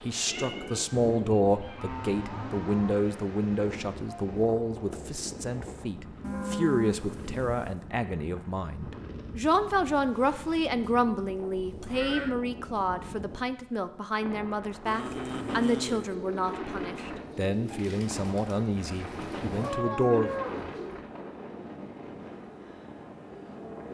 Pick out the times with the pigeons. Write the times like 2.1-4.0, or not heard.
15.1-21.1.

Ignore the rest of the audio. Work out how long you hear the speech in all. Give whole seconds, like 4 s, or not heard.
20 s.